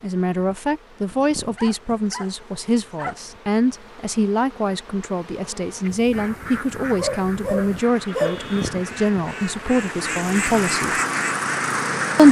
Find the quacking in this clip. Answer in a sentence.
You can hear the quacking from 5.8 to 12.2 s.